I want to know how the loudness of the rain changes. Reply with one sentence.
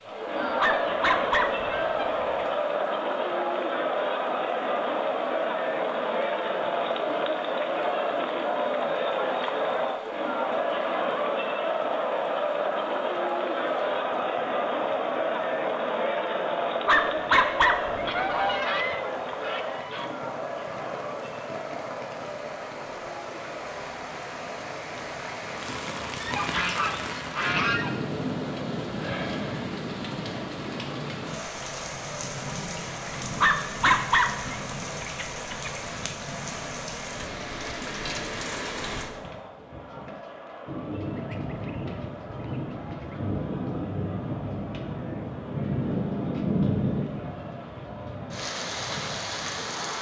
The loudness of the rain goes up.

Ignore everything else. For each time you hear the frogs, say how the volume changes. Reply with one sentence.
You can't hear the frogs here.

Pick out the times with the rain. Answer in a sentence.
The rain can be heard from 0.0 to 49.9 s.